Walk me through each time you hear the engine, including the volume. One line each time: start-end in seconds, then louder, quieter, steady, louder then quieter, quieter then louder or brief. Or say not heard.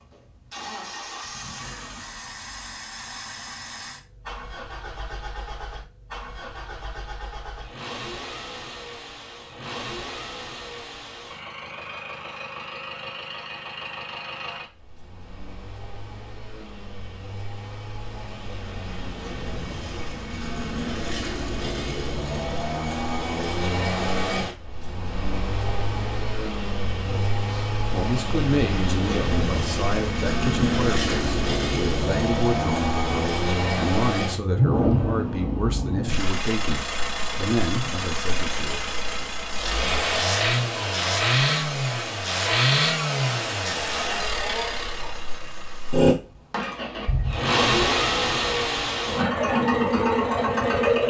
0.0-51.0 louder.